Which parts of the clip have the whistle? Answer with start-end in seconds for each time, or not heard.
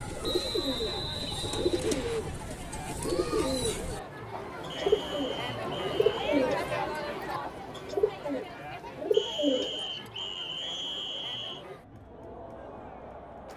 0.2-2.2, 4.7-6.5, 9.1-11.7.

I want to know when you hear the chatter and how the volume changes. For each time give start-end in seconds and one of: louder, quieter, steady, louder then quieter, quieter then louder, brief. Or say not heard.
0.0-13.5 louder then quieter.